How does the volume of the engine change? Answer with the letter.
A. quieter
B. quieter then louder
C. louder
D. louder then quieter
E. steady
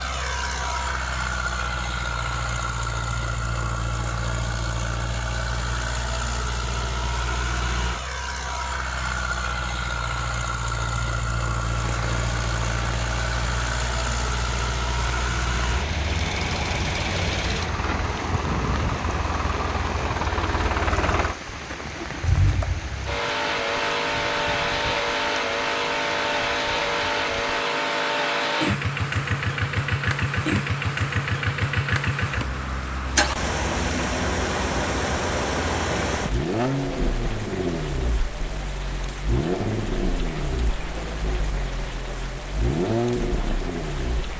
E.